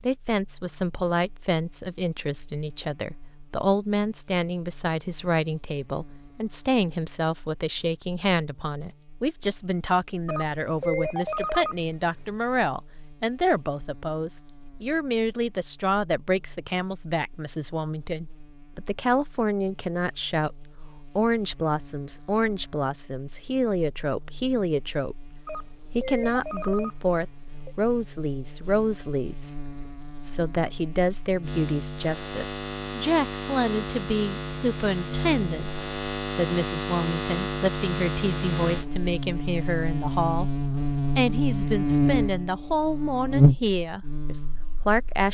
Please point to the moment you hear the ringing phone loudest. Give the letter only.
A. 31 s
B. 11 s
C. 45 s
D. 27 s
B.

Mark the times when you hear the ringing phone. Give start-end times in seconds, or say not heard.
10.2-12.3, 25.4-27.8.